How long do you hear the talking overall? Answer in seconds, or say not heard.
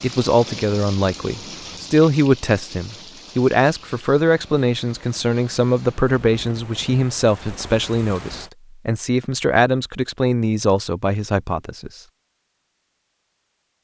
12 s.